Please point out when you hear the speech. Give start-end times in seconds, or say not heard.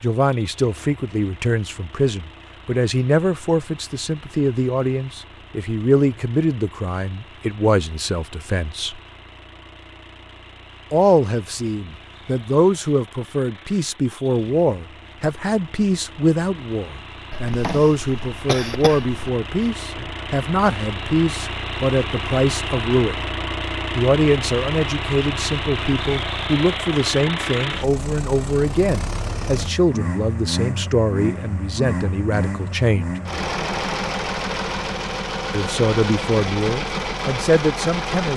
0.0-9.0, 10.9-23.2, 23.9-33.1, 35.5-38.3.